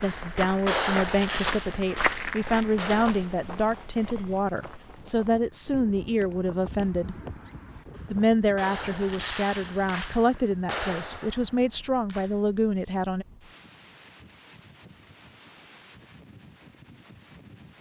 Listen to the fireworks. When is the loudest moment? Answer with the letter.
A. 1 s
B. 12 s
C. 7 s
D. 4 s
A.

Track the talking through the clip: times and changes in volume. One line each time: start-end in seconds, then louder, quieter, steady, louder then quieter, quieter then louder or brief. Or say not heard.
0.0-7.2 steady
8.1-13.2 steady.